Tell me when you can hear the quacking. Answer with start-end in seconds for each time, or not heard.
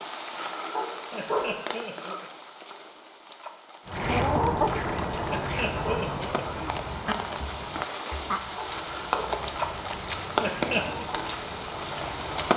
3.9-12.5.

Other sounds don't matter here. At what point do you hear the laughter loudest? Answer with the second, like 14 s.
11 s.